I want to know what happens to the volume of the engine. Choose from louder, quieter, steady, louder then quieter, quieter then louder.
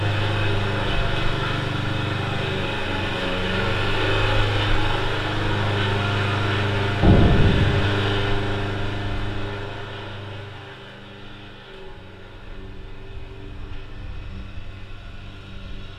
quieter.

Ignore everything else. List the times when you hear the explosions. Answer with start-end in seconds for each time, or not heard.
7.0-7.9.